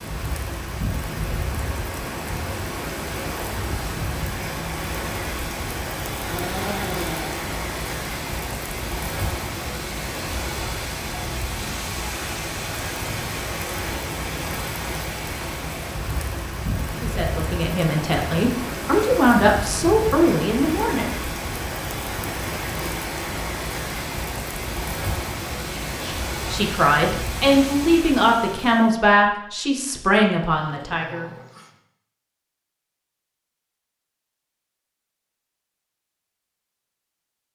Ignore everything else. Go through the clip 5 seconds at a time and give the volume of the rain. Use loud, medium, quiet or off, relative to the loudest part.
loud, loud, loud, loud, loud, loud, off, off.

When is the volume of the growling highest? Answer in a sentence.
The loudest moment of the growling is at 7 seconds.